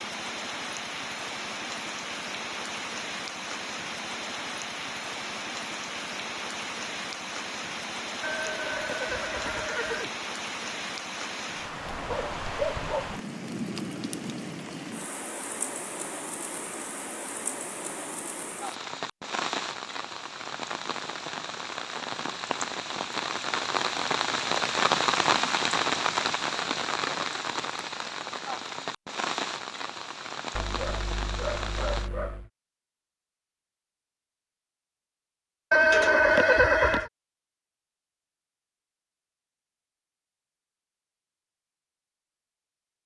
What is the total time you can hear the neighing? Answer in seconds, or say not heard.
3 s.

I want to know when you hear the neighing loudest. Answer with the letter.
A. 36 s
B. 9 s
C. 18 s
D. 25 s
A.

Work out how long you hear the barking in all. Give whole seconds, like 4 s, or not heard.
3 s.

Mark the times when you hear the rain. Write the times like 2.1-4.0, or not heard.
0.0-32.1.